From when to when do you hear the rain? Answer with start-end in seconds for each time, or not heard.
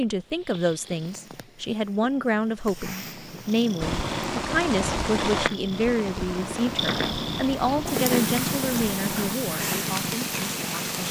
3.8-11.0.